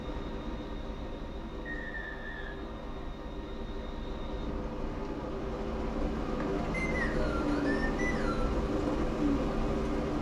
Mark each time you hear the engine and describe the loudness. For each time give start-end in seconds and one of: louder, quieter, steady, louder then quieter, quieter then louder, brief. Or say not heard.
0.0-10.1 louder.